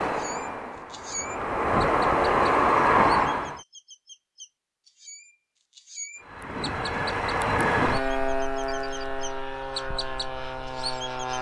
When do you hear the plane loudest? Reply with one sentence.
The loudest moment of the plane is at 3 seconds.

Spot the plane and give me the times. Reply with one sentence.
The plane can be heard from 0.0 to 3.6 s and from 6.2 to 11.3 s.